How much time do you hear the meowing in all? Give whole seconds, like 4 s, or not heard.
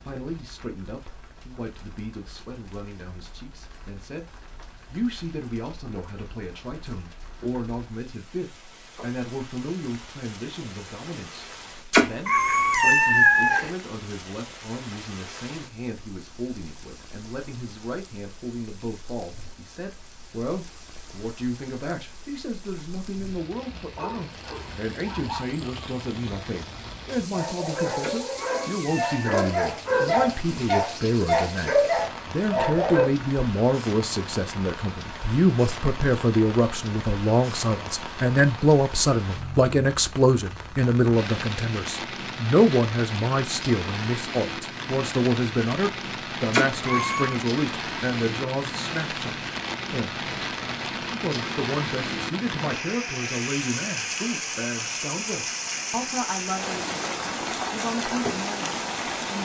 4 s.